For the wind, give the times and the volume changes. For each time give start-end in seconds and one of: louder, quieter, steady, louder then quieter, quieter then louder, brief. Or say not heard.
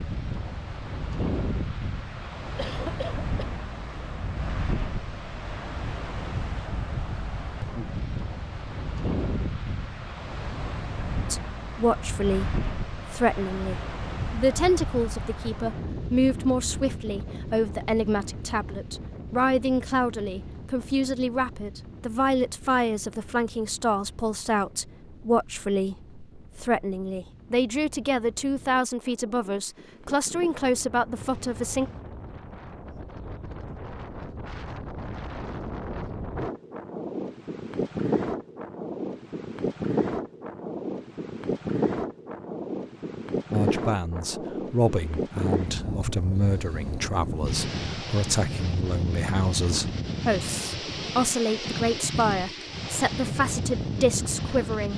0.0-54.9 quieter then louder.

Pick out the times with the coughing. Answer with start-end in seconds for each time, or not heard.
2.5-3.5.